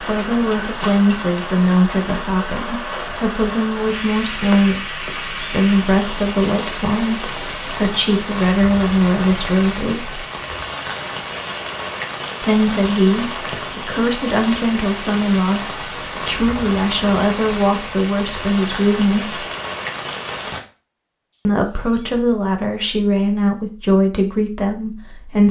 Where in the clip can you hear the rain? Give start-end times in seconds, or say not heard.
0.0-20.6.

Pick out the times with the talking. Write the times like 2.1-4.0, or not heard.
0.0-10.2, 12.4-19.4, 21.4-25.4.